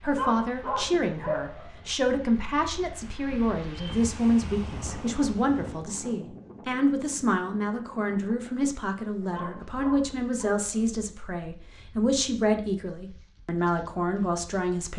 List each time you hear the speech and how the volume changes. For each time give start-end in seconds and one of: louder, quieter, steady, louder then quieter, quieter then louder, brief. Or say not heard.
0.0-14.9 steady.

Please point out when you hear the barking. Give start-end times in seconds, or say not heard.
0.1-1.9, 9.2-10.8.